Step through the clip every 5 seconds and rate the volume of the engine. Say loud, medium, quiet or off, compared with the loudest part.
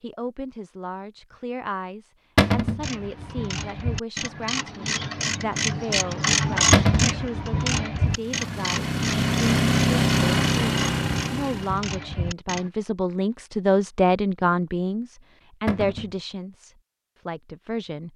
off, loud, loud, off.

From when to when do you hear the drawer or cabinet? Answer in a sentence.
The drawer or cabinet can be heard from 2.4 to 2.9 s, from 6.7 to 7.2 s and from 15.7 to 16.1 s.